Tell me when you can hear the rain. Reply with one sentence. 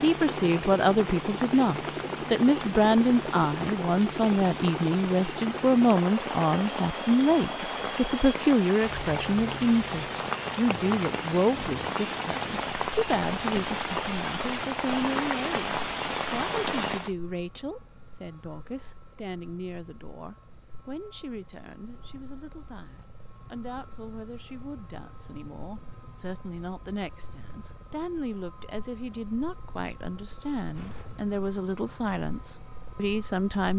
The rain can be heard from 0.0 to 17.1 s.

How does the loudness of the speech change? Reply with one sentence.
The volume of the speech goes down, then up.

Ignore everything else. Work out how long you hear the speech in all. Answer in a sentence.
You can hear the speech for 34 seconds altogether.